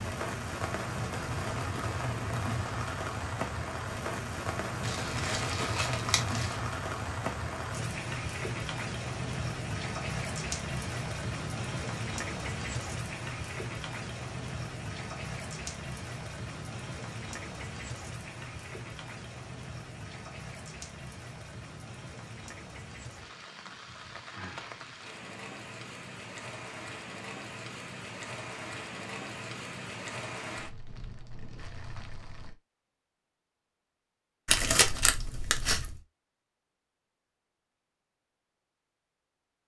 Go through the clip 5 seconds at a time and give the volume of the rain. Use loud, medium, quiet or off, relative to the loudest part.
loud, loud, loud, medium, medium, medium, medium, off.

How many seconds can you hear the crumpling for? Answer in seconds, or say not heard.
3 s.